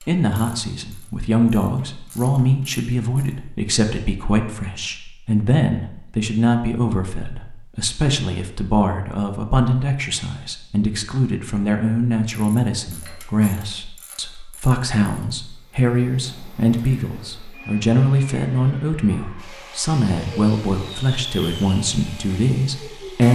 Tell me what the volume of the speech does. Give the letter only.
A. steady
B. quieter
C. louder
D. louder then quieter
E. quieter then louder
A.